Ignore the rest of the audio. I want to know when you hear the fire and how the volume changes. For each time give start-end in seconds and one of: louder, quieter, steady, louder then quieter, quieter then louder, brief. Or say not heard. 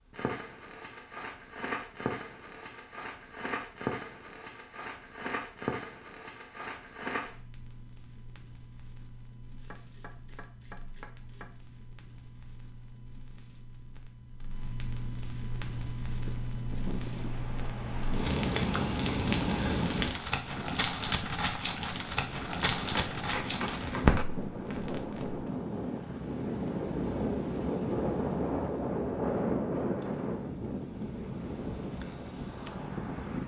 0.1-25.5 quieter then louder.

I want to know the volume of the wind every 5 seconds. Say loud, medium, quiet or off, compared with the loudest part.
off, off, off, medium, medium, loud, medium.